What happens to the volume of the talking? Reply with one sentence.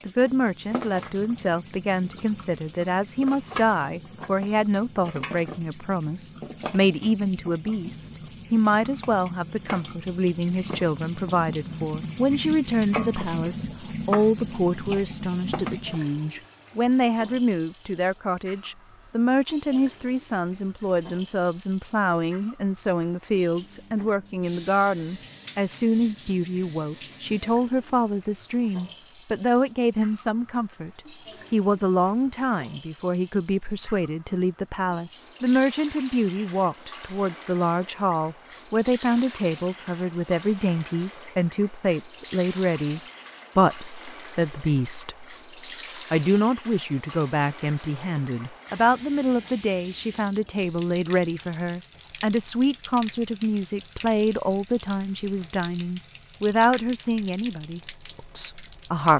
The volume of the talking stays about the same.